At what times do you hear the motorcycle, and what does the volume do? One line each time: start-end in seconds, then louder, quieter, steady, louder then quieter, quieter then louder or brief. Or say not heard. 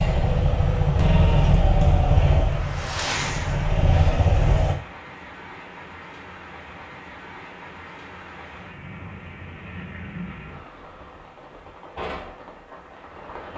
0.0-4.8 quieter then louder.